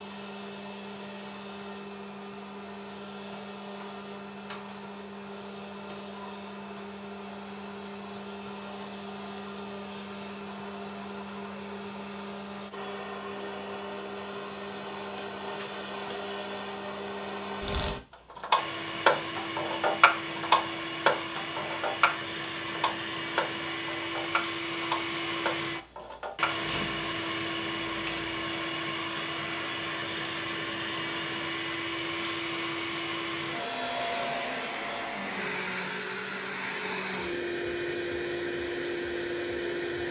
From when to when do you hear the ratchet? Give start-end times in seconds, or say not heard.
17.6-28.3.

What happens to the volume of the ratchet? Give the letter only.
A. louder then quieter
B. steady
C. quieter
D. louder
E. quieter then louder
C.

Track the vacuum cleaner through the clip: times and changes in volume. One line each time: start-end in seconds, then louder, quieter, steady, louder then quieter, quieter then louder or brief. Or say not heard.
0.0-40.0 louder.